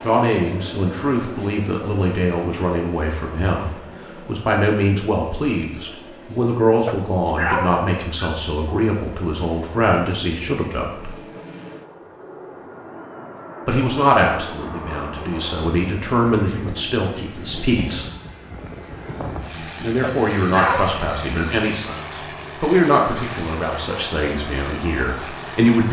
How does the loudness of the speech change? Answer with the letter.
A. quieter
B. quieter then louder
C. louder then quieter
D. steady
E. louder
D.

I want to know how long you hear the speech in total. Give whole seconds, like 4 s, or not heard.
22 s.